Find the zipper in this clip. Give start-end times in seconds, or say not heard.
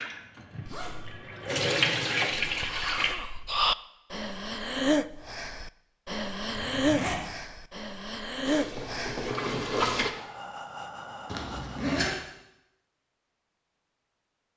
0.7-1.2, 6.5-7.2, 11.3-12.2.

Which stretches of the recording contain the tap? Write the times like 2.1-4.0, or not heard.
0.0-3.1, 8.4-10.1.